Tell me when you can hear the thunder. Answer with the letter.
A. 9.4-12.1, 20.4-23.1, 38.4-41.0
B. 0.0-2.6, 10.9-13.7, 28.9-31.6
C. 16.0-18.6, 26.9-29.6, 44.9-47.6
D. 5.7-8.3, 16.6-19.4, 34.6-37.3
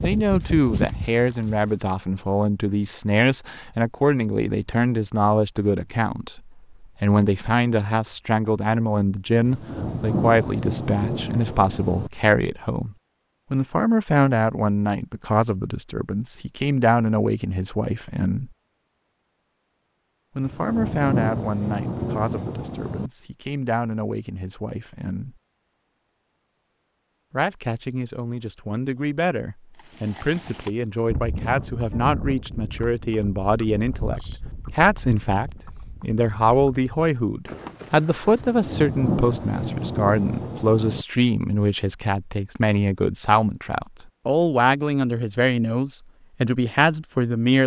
A.